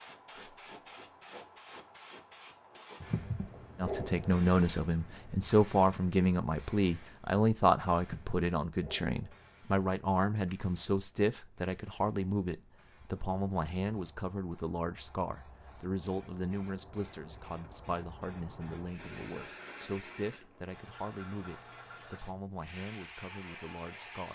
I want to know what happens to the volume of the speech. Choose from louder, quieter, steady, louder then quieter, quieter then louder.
quieter.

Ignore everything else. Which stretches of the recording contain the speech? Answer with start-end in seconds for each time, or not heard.
3.8-24.2.